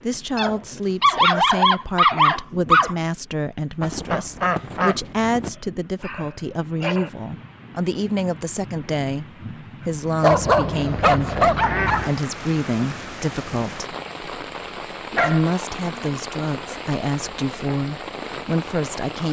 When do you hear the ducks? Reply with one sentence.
You can hear the ducks from 3.8 to 5.5 s and from 10.3 to 12.1 s.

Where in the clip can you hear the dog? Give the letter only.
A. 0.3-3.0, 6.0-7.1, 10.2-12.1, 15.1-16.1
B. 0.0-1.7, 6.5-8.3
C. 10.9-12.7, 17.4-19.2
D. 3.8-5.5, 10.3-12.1
A.